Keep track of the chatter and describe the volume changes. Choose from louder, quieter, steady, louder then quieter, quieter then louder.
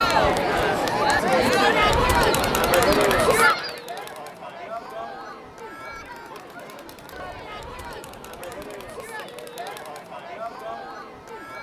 quieter.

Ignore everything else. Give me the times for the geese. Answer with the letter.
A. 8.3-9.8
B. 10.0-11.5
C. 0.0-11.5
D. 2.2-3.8
D.